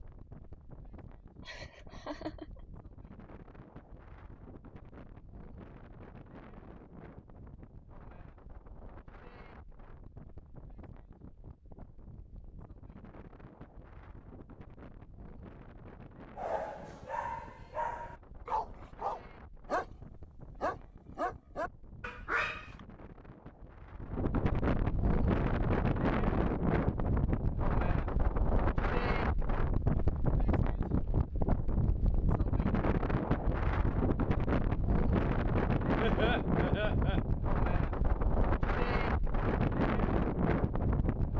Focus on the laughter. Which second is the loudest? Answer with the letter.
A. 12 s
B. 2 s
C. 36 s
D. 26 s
C.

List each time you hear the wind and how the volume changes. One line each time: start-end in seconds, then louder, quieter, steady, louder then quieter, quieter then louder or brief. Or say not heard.
0.0-41.3 louder.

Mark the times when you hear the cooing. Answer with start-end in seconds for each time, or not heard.
not heard.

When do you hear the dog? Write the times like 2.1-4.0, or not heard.
16.4-22.8.